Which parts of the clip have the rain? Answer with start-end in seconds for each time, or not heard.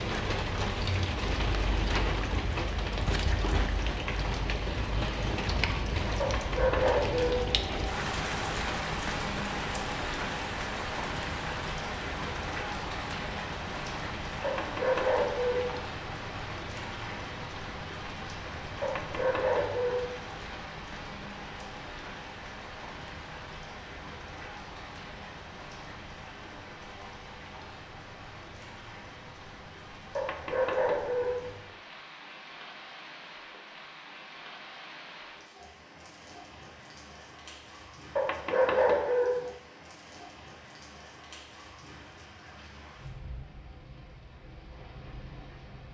0.0-45.9.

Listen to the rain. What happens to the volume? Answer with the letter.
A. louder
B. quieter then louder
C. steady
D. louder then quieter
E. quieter
E.